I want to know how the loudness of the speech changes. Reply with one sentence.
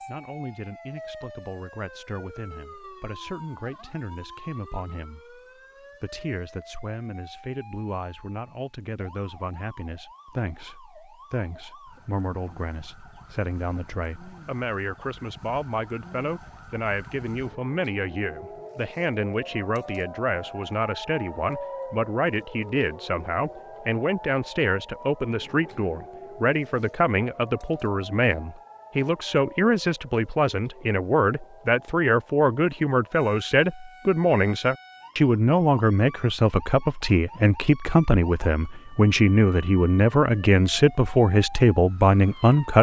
The volume of the speech goes up.